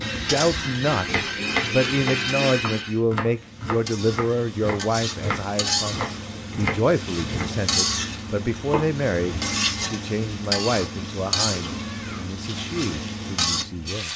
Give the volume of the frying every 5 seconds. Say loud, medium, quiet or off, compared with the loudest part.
medium, loud, loud.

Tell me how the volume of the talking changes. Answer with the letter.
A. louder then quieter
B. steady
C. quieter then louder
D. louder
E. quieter
E.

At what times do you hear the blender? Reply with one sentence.
The blender can be heard from 0.0 to 3.0 s.